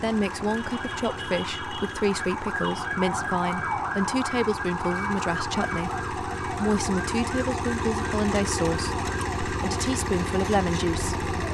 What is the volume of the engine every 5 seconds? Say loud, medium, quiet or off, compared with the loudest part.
medium, loud, loud.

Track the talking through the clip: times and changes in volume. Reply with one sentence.
The talking can be heard from 0.0 to 11.2 s, at a steady volume.